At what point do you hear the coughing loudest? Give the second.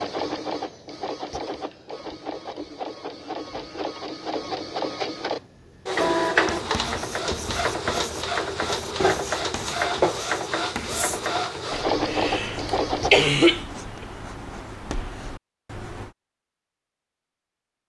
13 s.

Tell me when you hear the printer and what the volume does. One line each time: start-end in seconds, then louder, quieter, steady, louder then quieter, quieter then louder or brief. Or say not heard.
0.0-13.1 louder.